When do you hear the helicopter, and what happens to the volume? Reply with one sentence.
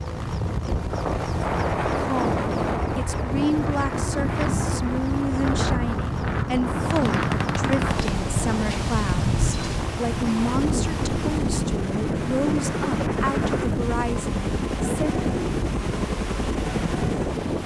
You can hear the helicopter from 0.0 to 17.6 s, at a steady volume.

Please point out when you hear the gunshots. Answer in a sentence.
You can hear the gunshots from 6.8 to 8.8 s.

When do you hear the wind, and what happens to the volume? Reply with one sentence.
You can hear the wind from 0.0 to 17.6 s, at a steady volume.